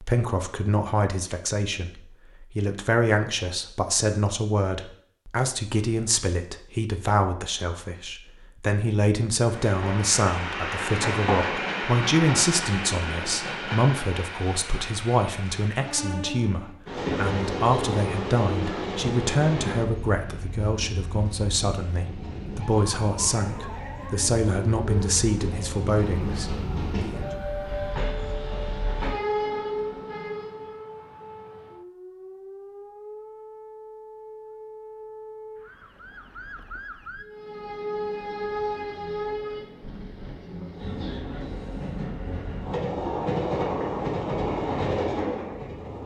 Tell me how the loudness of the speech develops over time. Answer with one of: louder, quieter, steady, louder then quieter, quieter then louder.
steady.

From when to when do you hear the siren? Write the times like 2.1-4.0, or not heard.
22.6-37.2.